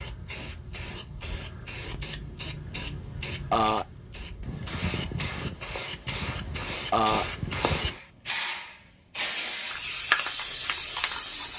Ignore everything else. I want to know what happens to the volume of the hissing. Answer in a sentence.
The loudness of the hissing goes up.